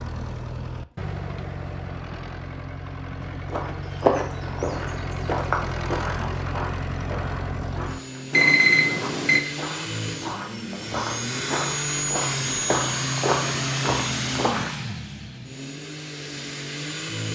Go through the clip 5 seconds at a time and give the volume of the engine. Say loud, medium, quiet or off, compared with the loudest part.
medium, medium, loud, medium.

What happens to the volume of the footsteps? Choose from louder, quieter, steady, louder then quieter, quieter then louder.
quieter then louder.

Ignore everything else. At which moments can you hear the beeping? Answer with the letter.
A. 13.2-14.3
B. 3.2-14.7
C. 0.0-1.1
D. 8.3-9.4
D.